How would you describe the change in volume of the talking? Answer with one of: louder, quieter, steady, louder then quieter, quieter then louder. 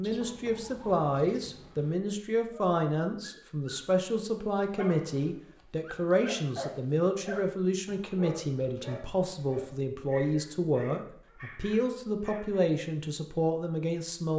steady.